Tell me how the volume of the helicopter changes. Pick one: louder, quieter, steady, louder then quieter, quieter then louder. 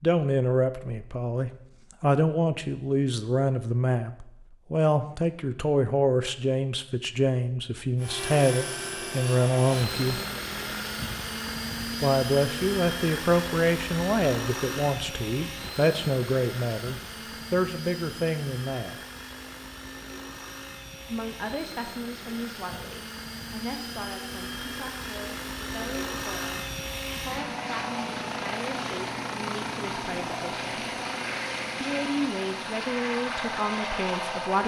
quieter then louder.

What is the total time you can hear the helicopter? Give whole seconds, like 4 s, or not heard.
27 s.